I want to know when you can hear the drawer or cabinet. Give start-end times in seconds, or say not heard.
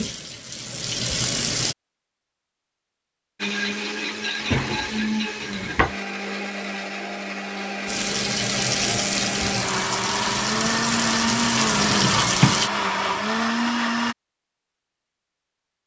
4.4-6.0, 11.8-12.7.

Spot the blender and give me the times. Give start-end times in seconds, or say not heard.
3.4-14.2.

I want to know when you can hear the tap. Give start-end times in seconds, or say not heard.
0.0-1.8, 7.8-12.7.